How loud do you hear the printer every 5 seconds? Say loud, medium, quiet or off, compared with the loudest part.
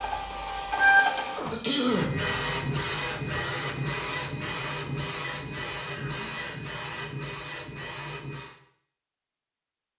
loud, medium.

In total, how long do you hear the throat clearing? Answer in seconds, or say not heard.
2 s.